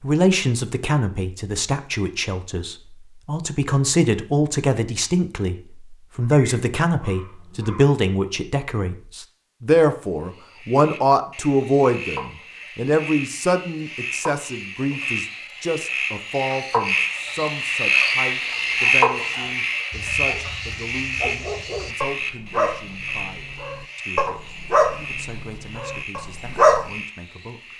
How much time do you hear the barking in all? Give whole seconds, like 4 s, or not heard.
10 s.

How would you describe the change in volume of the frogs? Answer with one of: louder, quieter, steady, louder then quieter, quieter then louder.
louder then quieter.